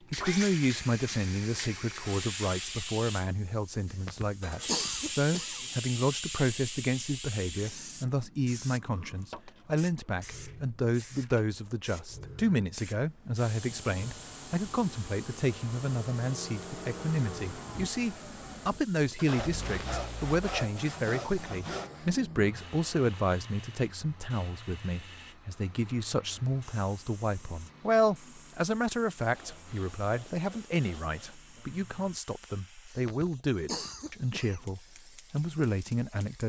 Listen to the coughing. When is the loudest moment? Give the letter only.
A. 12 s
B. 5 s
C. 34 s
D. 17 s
B.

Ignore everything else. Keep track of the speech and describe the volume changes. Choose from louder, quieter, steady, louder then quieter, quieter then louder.
steady.